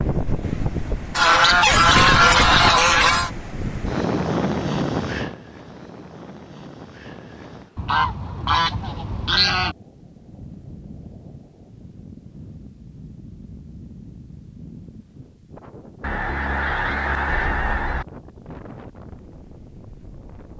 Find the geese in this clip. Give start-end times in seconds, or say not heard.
1.1-3.3, 7.8-9.8, 16.0-18.1.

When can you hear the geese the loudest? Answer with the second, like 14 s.
2 s.